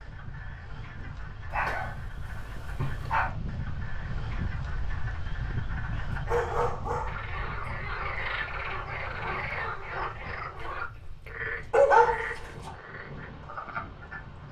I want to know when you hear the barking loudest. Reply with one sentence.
The loudest moment of the barking is at 12 seconds.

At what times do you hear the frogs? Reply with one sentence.
You can hear the frogs from 0.0 to 14.4 s.